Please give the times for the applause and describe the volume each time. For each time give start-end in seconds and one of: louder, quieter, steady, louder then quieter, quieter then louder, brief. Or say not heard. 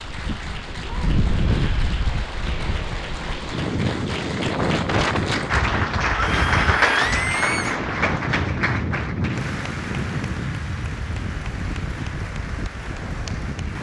0.0-13.7 louder then quieter.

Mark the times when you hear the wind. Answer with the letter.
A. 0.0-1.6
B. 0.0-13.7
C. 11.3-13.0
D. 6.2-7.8
B.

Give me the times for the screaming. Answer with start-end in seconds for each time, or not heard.
6.2-7.8.